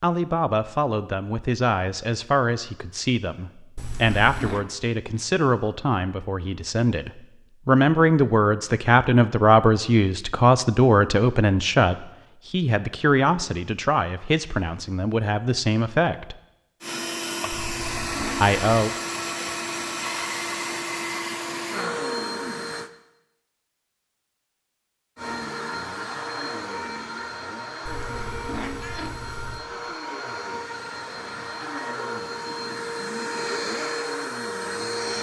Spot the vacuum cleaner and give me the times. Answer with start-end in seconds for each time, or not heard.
16.8-22.9, 25.1-35.1.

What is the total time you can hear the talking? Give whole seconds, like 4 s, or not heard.
17 s.